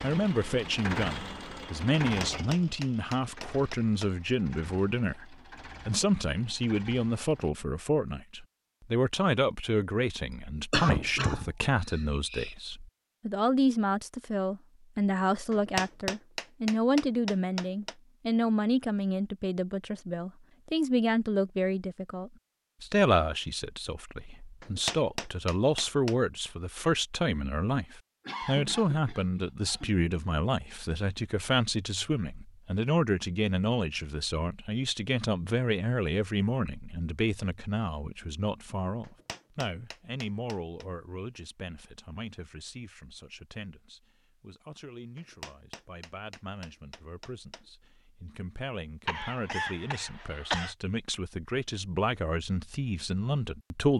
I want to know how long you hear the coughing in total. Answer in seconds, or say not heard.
5 s.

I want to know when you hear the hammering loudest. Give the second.
16 s.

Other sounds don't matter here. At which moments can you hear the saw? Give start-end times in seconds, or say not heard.
not heard.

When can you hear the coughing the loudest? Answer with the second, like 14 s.
11 s.